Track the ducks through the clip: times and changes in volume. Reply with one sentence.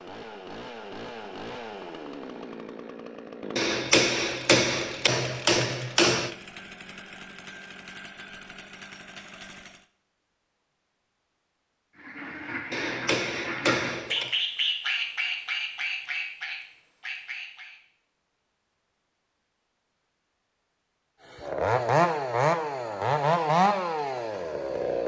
The ducks can be heard from 11.9 to 17.8 s, getting louder then quieter.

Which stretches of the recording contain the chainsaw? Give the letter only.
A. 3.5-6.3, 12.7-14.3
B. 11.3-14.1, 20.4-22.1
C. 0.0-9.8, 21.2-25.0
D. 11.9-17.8
C.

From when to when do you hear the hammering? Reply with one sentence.
The hammering can be heard from 3.5 to 6.3 s and from 12.7 to 14.3 s.